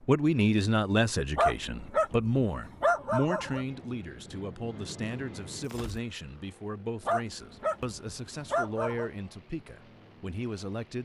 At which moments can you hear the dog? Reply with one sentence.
The dog can be heard from 1.4 to 3.6 s and from 7.0 to 9.1 s.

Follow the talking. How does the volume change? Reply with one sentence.
The volume of the talking goes down.